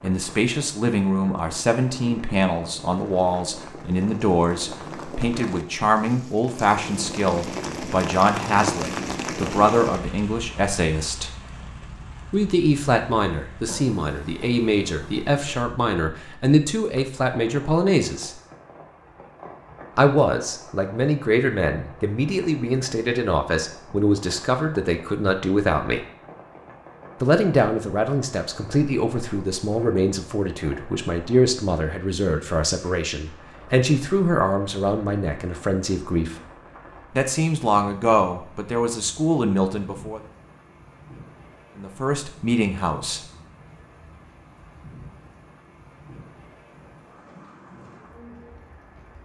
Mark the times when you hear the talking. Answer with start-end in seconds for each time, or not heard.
0.0-11.3, 12.3-18.4, 19.9-26.0, 27.2-36.4, 37.1-40.2, 41.8-43.2.